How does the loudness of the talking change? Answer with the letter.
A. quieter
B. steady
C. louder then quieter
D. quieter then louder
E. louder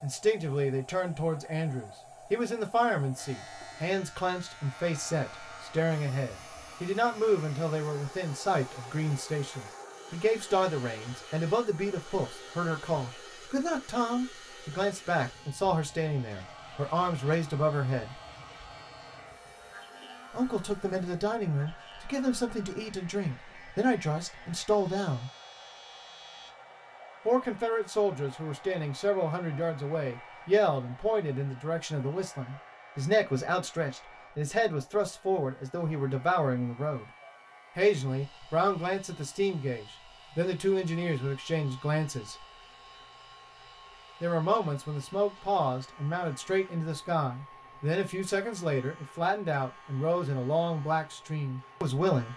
B.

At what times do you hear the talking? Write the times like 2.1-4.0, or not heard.
0.0-18.1, 20.3-25.3, 27.2-37.0, 37.8-42.5, 44.2-52.3.